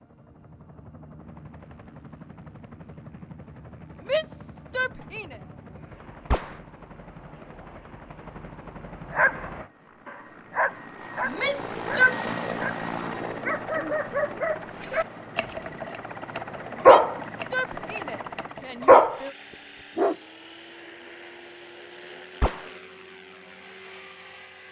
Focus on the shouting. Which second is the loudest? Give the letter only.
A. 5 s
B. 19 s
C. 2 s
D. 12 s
D.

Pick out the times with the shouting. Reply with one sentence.
You can hear the shouting from 4.0 to 5.4 s, from 11.2 to 12.2 s and from 16.8 to 19.4 s.